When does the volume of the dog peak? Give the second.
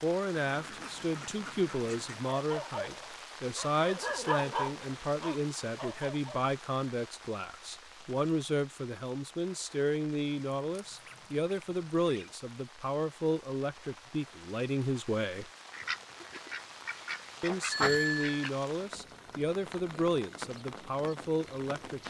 4 s.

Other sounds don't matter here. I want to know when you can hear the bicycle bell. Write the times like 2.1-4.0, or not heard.
17.7-18.5.